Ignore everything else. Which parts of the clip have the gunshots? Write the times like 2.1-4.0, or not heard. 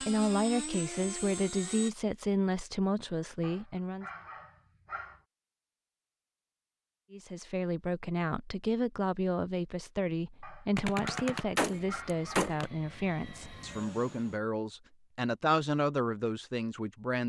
10.8-12.7.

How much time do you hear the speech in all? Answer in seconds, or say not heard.
14 s.